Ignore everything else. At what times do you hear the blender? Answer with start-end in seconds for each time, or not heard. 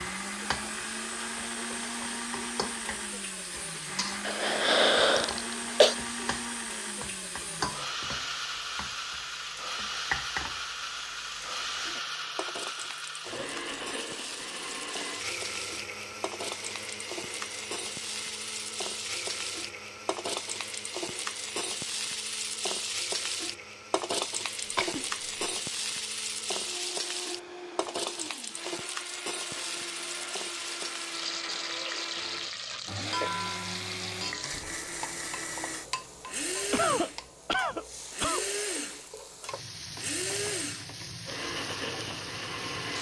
0.0-42.9.